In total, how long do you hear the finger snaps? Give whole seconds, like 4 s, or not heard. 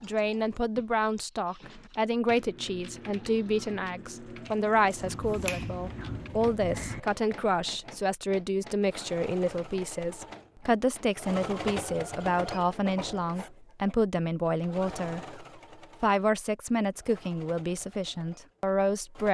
2 s.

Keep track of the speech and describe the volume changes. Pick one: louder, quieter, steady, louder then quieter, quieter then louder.
steady.